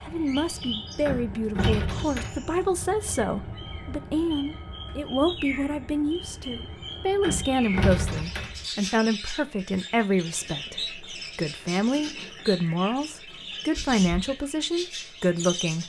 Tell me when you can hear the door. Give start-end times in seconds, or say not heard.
1.1-2.5, 7.2-8.7, 13.7-14.3.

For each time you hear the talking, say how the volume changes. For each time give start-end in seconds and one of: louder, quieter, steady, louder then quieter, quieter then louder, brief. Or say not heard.
0.0-15.8 steady.